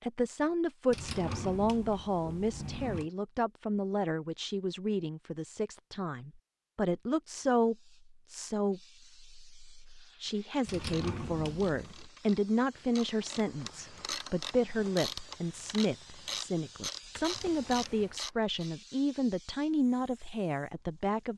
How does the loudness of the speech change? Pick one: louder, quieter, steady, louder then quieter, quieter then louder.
steady.